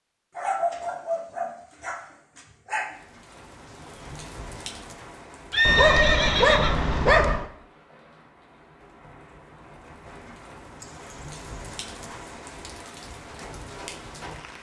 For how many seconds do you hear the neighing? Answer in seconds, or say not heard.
2 s.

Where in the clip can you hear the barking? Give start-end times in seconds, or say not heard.
0.3-3.0, 5.7-7.5, 10.8-12.3.